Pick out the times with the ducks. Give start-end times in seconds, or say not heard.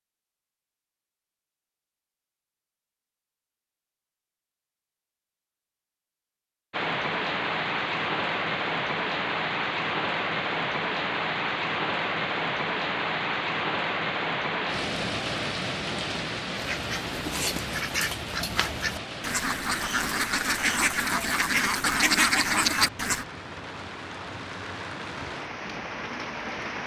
16.6-23.2.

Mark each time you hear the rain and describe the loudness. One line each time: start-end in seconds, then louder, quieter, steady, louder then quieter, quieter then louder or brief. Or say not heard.
6.7-26.8 quieter.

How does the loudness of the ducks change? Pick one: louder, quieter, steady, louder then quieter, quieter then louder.
louder.